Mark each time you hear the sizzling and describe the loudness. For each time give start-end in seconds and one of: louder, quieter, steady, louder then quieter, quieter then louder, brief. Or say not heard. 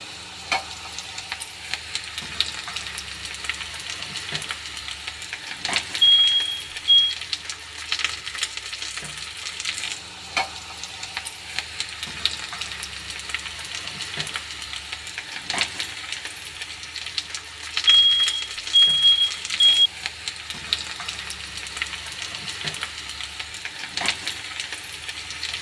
0.0-25.5 steady.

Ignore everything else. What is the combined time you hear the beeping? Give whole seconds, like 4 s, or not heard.
3 s.